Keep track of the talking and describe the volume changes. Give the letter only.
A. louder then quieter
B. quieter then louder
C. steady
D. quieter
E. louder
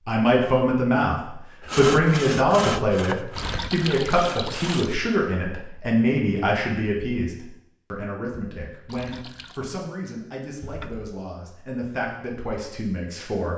D.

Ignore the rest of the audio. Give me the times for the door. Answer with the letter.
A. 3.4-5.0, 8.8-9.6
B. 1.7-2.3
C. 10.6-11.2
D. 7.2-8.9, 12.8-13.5
C.